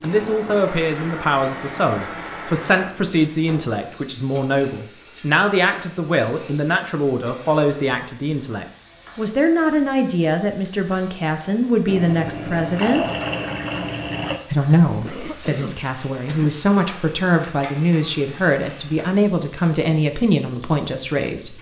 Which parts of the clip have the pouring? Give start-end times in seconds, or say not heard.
11.8-14.4.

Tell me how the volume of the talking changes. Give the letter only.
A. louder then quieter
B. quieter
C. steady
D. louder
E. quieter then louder
C.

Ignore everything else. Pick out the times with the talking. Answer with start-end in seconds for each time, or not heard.
0.0-13.1, 14.5-21.5.